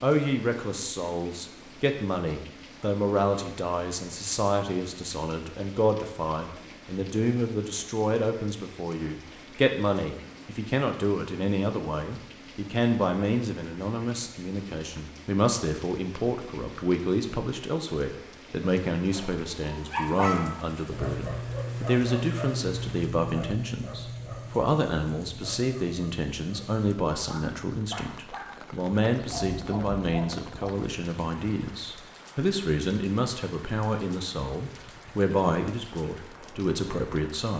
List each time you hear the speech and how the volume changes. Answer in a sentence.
The speech can be heard from 0.0 to 37.5 s, at a steady volume.